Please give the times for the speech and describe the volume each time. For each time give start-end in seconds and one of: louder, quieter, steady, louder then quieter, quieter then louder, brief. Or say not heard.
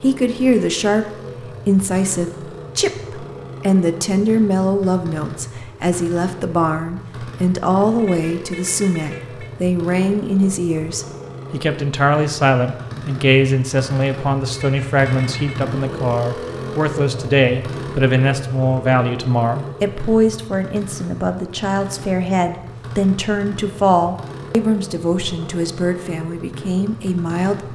0.0-27.7 steady.